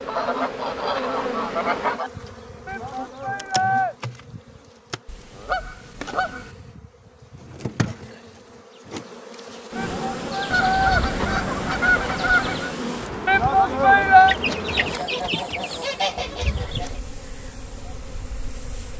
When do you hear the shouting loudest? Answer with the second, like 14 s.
14 s.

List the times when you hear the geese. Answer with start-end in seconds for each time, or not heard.
0.1-2.1, 5.0-6.5, 10.5-12.7, 14.2-16.9.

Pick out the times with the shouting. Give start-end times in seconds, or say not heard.
2.6-4.0, 9.8-11.0, 13.2-14.3.